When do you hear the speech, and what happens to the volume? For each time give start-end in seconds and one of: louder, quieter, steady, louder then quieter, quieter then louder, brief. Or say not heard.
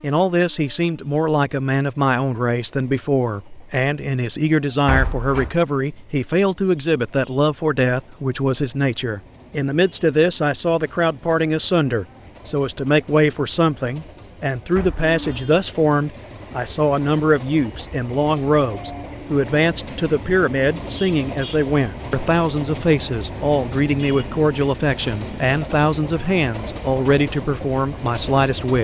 0.0-28.7 steady.